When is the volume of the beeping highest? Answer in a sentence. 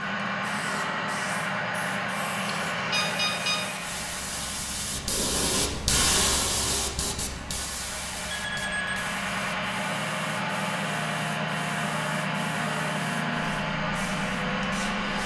The volume of the beeping peaks at 3 seconds.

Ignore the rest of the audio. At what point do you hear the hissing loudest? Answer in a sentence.
The volume of the hissing peaks at 6 seconds.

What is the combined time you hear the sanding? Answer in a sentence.
You can't hear the sanding here.